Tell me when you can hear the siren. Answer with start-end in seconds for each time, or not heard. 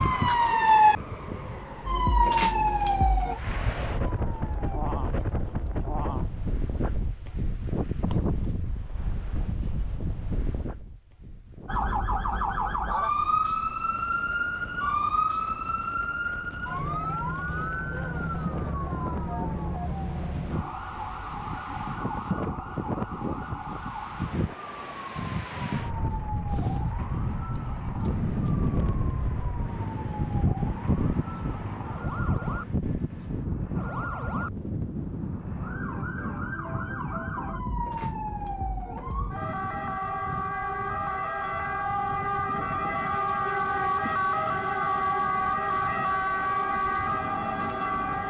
0.0-4.8, 11.7-48.2.